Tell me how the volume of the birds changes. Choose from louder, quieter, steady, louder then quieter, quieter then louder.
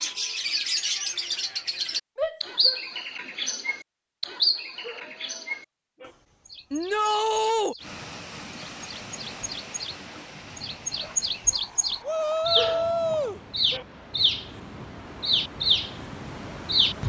quieter then louder.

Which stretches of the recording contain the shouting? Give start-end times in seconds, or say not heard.
2.1-2.8, 6.7-7.8, 12.0-13.4.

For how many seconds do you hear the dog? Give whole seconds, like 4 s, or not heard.
3 s.